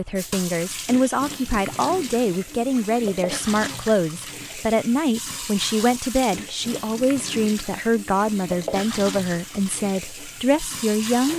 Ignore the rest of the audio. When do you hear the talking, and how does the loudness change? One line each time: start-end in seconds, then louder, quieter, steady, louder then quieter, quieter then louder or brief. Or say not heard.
0.0-11.3 steady.